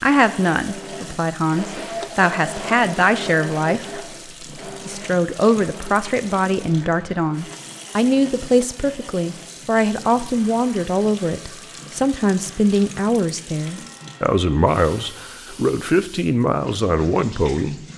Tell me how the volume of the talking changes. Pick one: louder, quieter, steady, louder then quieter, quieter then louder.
steady.